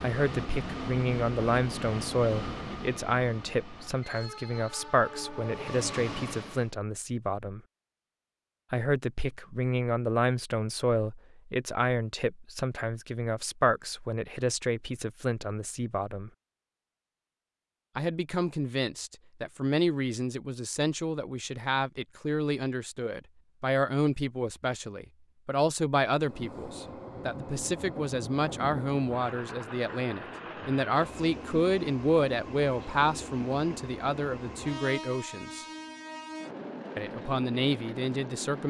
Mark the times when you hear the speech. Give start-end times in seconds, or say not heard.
0.0-7.6, 8.7-16.3, 17.9-35.6, 37.0-38.6.